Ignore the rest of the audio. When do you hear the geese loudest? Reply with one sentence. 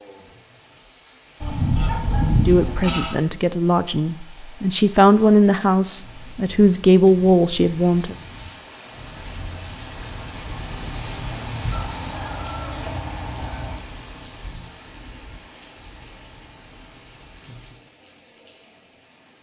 The volume of the geese peaks at 2 seconds.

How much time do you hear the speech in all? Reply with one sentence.
You can hear the speech for 6 seconds altogether.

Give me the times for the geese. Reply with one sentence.
You can hear the geese from 1.4 to 3.2 s and from 11.7 to 13.8 s.